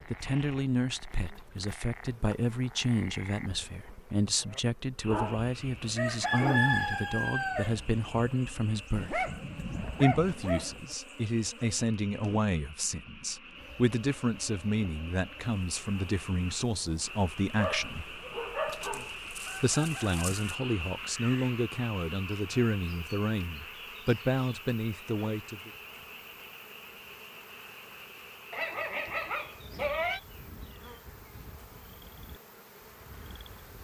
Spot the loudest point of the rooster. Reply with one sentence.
The loudest moment of the rooster is at 7 seconds.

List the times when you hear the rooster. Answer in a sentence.
The rooster can be heard from 5.3 to 8.1 s and from 18.9 to 20.6 s.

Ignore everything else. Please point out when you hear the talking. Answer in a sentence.
The talking can be heard from 0.1 to 9.3 s, from 10.0 to 18.1 s and from 19.6 to 25.7 s.